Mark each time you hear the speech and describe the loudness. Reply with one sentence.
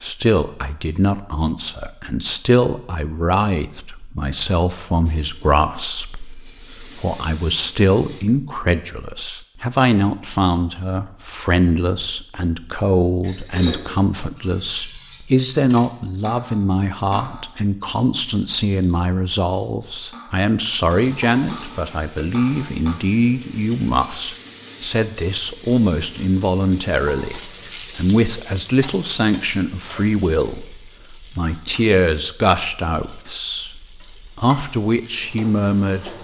The speech can be heard from 0.0 to 36.1 s, at a steady volume.